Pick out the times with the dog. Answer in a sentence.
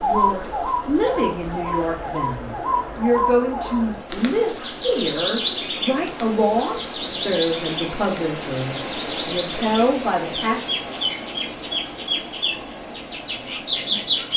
You can't hear the dog here.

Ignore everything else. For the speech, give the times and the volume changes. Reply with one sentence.
The speech can be heard from 0.0 to 10.8 s, at a steady volume.